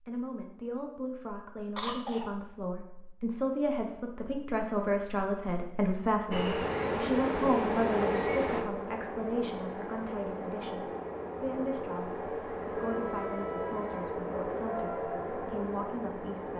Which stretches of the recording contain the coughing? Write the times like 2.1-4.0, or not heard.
1.8-2.4.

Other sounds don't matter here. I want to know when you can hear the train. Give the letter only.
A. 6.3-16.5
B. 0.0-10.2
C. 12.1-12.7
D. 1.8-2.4
A.